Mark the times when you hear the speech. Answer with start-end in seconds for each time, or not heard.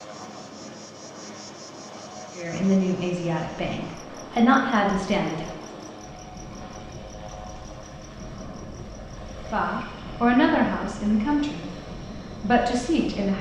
2.4-5.5, 9.5-11.7, 12.4-13.3.